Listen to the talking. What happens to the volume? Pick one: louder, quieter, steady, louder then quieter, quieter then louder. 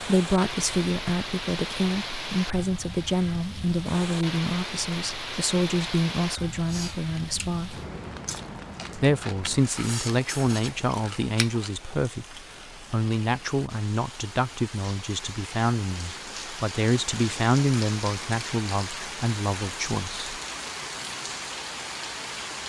steady.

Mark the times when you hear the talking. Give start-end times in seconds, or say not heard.
0.0-7.8, 8.9-20.2.